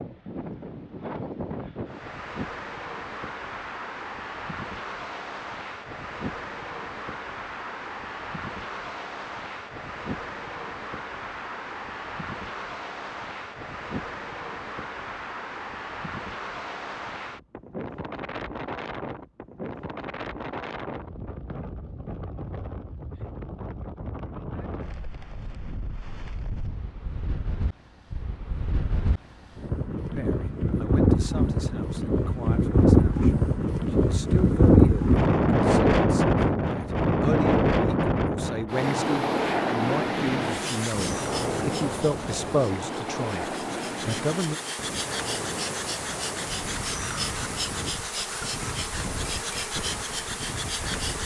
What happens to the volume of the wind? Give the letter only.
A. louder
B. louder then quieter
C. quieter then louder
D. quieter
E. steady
B.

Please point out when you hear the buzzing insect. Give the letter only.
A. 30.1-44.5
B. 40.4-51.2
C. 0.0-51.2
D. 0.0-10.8
B.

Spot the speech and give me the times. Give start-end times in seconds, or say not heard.
30.1-44.5.